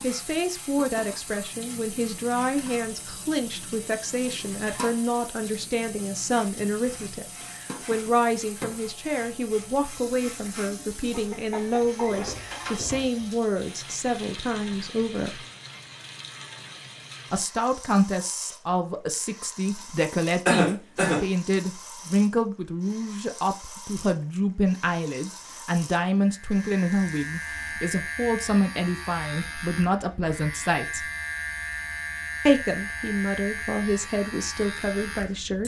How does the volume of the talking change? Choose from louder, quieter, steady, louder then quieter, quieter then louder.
steady.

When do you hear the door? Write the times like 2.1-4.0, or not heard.
not heard.